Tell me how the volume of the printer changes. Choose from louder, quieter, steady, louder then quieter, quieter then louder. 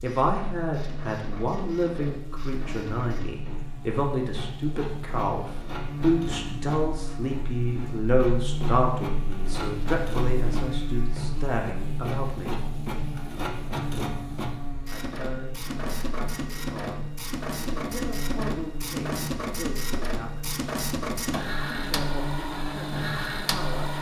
louder.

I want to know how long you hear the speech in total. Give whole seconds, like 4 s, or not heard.
20 s.